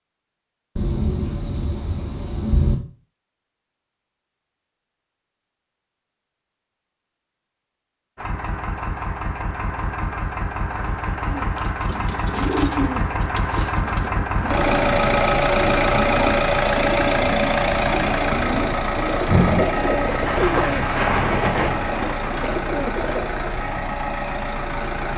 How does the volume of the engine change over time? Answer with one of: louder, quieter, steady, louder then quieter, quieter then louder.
louder then quieter.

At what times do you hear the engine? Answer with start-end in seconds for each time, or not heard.
8.2-25.1.